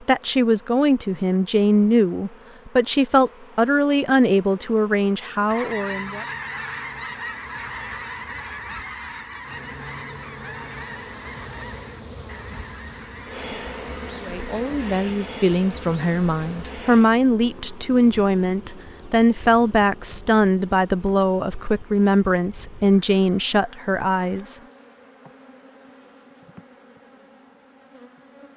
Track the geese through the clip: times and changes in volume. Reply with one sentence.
The geese can be heard from 5.5 to 14.9 s, getting quieter.